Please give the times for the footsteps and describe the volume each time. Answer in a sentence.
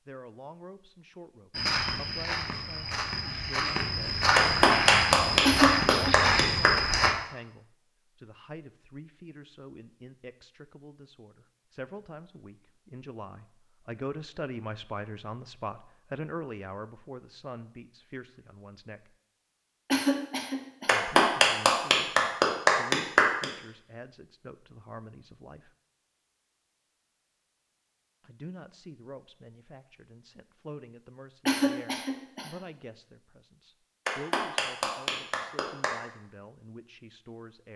The footsteps can be heard from 1.5 to 7.2 s, getting louder.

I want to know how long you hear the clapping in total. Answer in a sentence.
The clapping can be heard for 7 seconds in total.